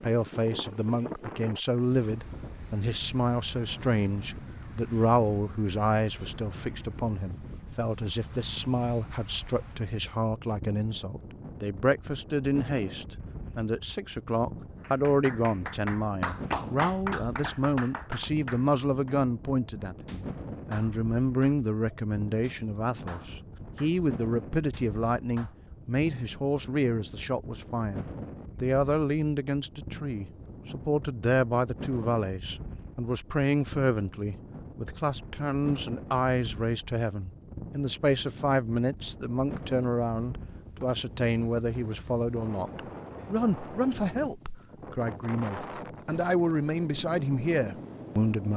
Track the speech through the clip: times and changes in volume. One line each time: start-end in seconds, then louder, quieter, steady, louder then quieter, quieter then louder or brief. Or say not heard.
0.0-48.5 steady.